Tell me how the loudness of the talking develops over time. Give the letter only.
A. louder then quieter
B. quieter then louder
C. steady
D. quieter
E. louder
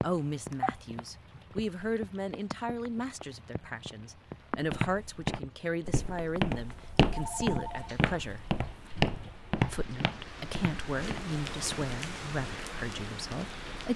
C.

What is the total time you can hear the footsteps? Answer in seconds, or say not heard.
7 s.